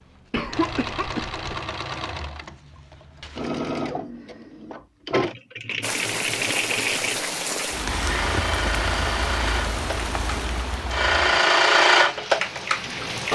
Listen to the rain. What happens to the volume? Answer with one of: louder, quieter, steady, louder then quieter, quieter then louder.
quieter.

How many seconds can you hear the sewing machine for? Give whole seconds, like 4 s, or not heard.
13 s.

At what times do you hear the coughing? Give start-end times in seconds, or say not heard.
0.3-1.6.